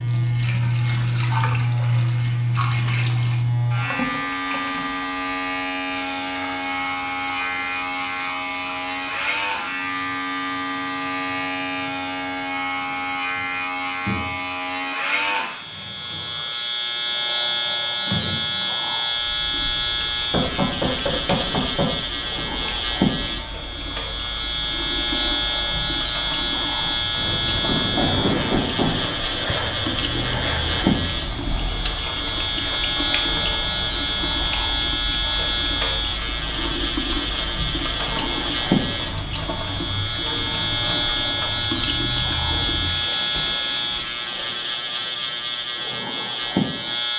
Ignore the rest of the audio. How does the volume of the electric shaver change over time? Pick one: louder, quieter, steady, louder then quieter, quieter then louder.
steady.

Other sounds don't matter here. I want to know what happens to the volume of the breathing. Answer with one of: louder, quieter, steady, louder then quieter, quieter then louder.
quieter.